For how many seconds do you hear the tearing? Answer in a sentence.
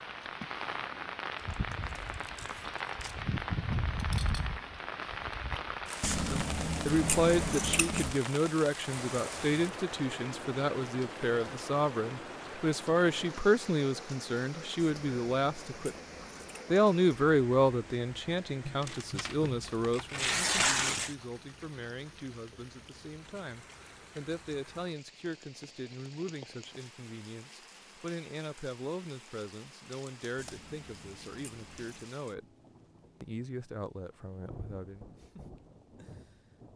You can hear the tearing for 5 seconds altogether.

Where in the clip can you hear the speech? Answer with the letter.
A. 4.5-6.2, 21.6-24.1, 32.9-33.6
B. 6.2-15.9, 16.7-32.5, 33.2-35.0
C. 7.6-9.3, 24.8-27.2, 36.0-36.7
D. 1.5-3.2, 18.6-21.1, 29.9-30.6
B.